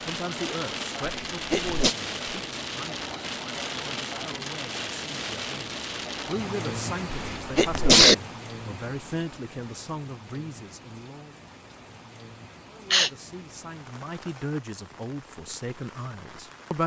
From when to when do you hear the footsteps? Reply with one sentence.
The footsteps can't be heard in this clip.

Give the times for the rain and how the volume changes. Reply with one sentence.
You can hear the rain from 0.0 to 16.8 s, getting quieter.